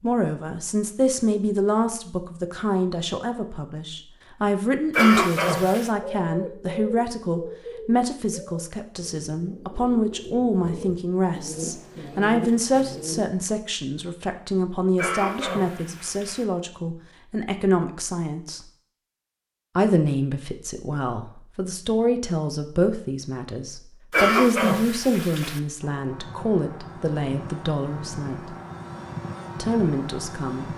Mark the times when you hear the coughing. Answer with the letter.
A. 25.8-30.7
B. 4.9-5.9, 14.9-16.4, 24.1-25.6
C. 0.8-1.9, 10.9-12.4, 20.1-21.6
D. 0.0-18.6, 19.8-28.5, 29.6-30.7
B.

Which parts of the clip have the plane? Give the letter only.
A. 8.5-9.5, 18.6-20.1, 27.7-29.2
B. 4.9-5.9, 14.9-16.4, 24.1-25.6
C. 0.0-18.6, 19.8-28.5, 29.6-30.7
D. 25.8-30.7
D.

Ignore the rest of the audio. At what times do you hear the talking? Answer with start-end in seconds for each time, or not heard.
0.0-18.6, 19.8-28.5, 29.6-30.7.